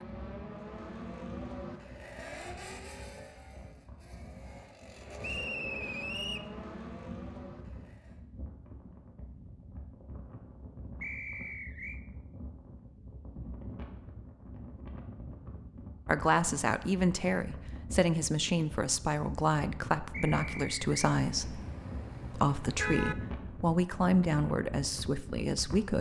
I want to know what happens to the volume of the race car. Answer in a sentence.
The volume of the race car goes down, then up.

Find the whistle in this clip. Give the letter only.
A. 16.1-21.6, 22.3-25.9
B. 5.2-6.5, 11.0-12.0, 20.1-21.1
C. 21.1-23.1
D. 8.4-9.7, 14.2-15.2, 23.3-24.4
B.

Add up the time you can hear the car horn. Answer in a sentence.
You can hear the car horn for 2 seconds altogether.